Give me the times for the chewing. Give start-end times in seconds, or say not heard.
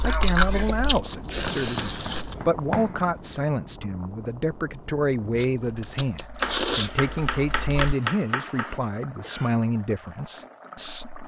0.0-2.4, 5.3-8.0.